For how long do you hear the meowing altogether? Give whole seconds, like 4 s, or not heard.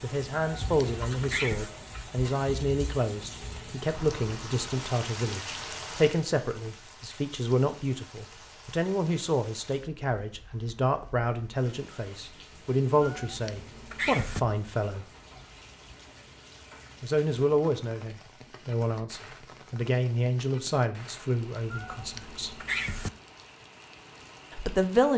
4 s.